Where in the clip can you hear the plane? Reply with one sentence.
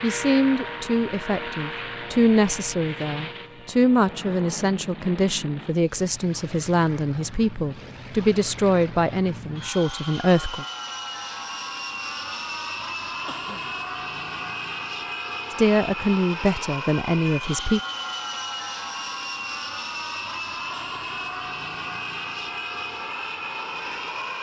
You can hear the plane from 0.0 to 24.3 s.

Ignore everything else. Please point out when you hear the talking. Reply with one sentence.
You can hear the talking from 0.0 to 10.7 s and from 15.6 to 17.8 s.